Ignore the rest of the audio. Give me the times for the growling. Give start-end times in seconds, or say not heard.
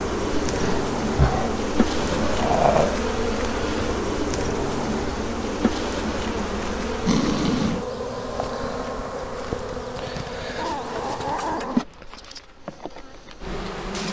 0.5-3.0, 6.6-7.8, 10.6-12.1.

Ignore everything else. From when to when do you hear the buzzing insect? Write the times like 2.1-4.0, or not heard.
0.0-14.0.